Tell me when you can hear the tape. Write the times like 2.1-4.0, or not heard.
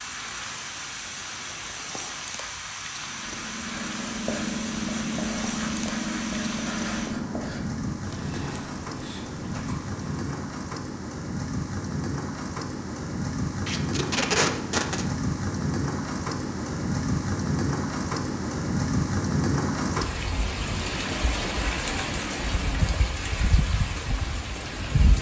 13.7-15.1.